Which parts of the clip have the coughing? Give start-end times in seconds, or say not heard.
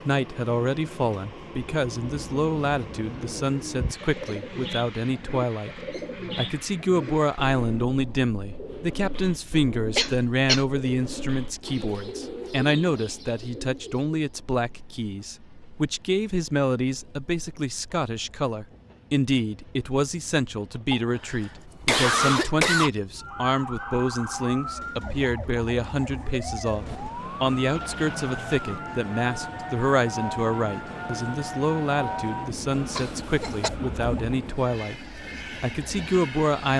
9.9-10.7, 20.9-22.9, 33.0-33.7.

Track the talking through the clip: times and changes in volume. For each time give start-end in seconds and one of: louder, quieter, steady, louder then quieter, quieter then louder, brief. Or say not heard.
0.1-36.7 steady.